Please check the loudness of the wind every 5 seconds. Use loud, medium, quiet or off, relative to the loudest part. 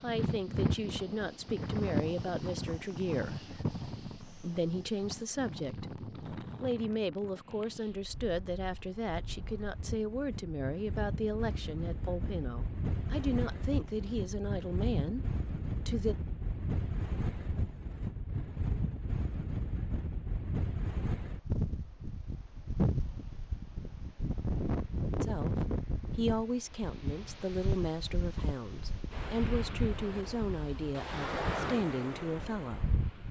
loud, medium, loud, loud, loud, loud, loud.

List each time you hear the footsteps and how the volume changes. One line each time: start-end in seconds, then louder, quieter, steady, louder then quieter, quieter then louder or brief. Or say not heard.
not heard.